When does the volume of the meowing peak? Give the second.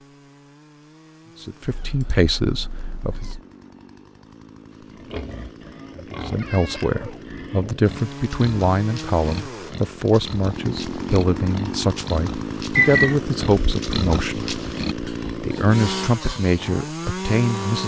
13 s.